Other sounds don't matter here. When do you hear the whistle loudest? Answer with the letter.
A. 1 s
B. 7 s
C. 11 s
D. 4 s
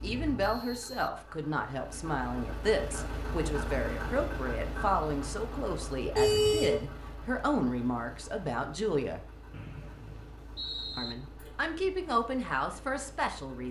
C.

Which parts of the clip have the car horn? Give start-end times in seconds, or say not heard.
6.2-6.8.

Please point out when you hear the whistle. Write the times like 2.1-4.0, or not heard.
0.4-1.1, 9.5-11.2.